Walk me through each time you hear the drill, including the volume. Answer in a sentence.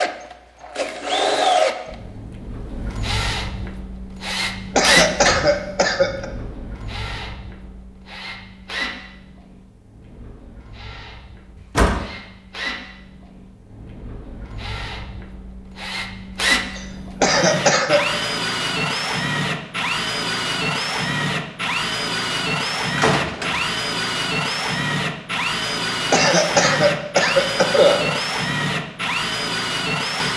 You can hear the drill from 0.0 to 30.3 s, getting quieter then louder.